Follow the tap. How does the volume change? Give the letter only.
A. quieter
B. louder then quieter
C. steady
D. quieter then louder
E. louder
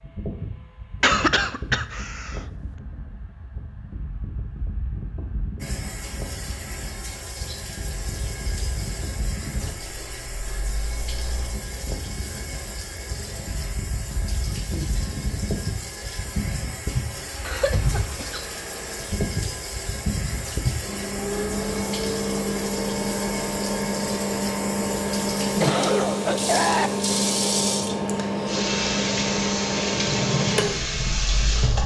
E.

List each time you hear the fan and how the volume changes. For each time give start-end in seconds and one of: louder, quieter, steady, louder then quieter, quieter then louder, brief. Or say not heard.
0.0-31.8 louder.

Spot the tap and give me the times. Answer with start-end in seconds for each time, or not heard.
5.6-31.8.